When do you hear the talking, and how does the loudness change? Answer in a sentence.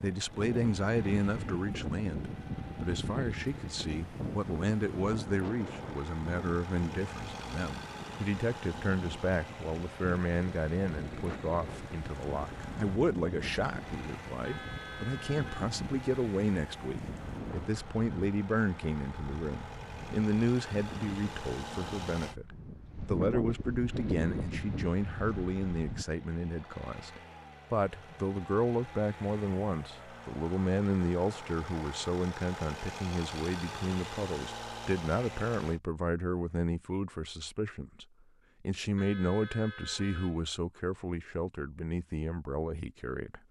You can hear the talking from 0.0 to 43.4 s, at a steady volume.